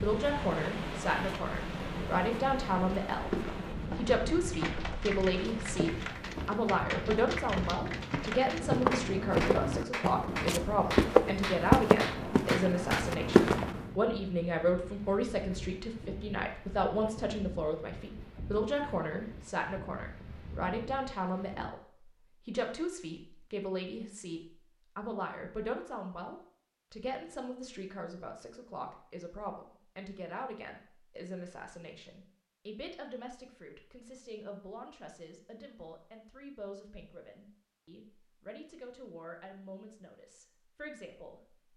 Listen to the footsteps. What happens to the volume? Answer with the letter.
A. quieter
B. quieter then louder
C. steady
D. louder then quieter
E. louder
E.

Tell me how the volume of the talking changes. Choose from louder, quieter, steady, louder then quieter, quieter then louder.
quieter.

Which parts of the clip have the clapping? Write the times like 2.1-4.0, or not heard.
4.6-13.1.